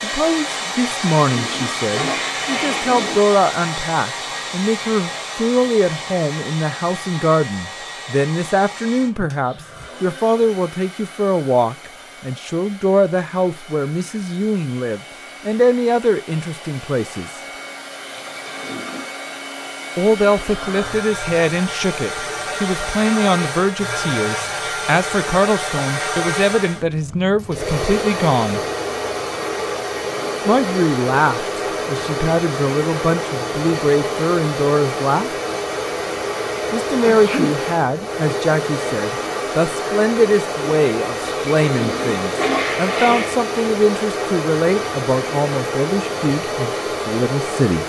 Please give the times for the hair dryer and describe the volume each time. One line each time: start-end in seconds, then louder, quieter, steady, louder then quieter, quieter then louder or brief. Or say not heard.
0.0-47.8 quieter then louder.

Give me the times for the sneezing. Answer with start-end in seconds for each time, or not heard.
37.0-37.6.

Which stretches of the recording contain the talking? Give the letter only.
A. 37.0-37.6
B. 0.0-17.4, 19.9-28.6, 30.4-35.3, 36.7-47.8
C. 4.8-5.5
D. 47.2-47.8
B.